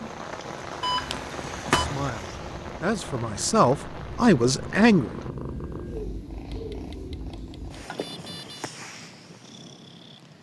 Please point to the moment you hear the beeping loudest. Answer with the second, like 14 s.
1 s.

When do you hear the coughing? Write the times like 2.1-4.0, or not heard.
not heard.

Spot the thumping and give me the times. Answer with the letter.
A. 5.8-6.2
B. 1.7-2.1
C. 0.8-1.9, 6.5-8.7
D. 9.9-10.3
B.